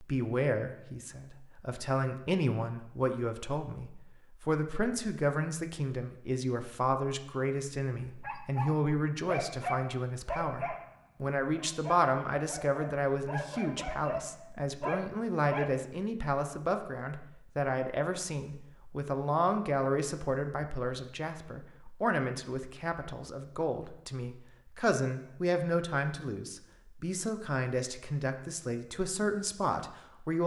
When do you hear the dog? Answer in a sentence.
The dog can be heard from 8.1 to 15.7 s.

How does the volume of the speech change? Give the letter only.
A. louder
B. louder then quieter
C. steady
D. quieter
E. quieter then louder
C.